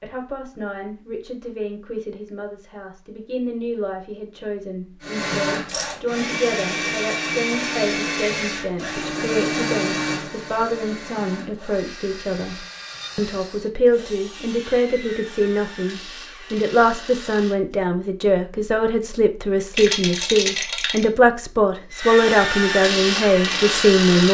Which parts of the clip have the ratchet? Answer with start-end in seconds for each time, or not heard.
not heard.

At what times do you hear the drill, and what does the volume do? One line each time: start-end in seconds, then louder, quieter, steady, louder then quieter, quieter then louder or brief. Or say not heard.
5.0-17.8 quieter
21.9-24.2 brief.